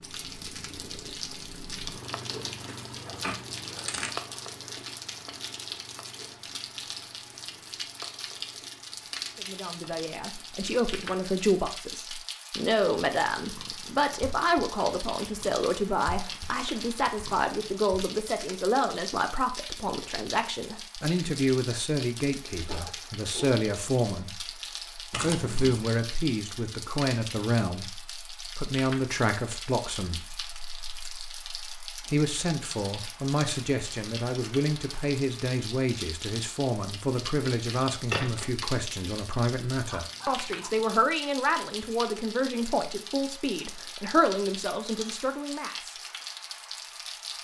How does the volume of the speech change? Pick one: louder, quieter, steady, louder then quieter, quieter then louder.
steady.